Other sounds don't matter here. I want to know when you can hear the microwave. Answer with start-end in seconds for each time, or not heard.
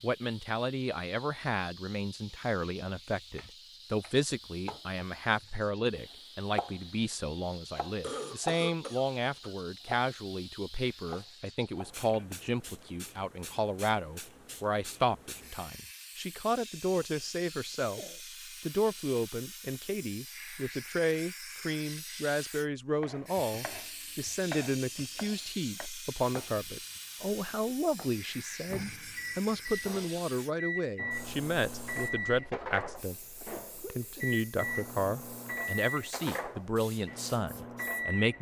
28.6-38.3.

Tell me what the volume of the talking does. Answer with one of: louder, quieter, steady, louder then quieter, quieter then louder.
steady.